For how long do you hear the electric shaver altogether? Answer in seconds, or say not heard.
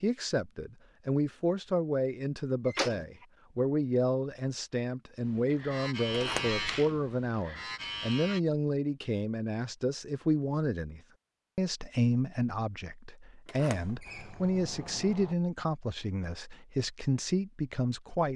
3 s.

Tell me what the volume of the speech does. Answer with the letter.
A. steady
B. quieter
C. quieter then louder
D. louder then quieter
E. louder
A.